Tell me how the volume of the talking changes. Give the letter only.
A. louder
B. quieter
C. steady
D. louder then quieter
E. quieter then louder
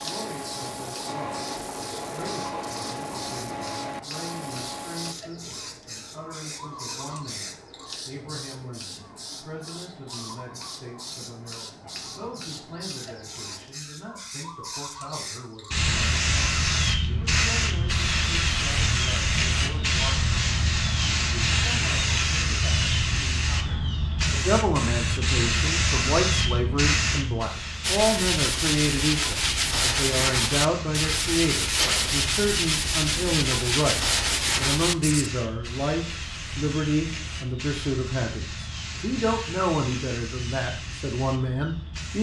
A.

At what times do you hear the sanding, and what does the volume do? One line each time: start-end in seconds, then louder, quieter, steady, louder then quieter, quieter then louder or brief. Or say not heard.
0.0-5.2 steady
27.8-35.3 steady.